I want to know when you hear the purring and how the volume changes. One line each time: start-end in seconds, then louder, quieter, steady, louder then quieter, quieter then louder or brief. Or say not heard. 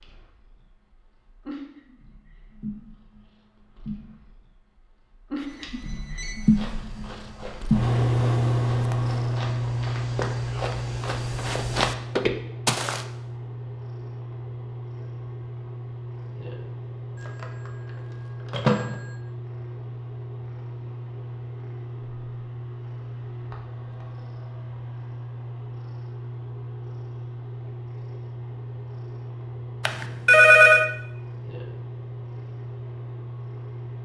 0.0-33.9 louder then quieter.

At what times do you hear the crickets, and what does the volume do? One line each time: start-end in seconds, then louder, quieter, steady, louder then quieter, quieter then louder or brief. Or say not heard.
not heard.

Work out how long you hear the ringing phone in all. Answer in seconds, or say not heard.
3 s.